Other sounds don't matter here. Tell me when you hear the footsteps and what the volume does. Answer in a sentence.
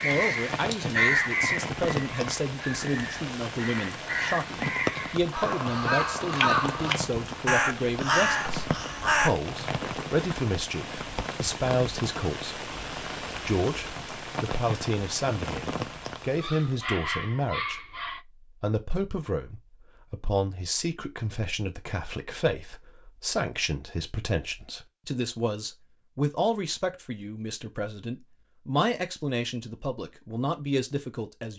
You can't hear the footsteps here.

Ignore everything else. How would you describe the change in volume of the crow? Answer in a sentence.
The loudness of the crow goes down, then up.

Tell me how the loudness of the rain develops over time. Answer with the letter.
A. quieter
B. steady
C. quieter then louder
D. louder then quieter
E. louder
B.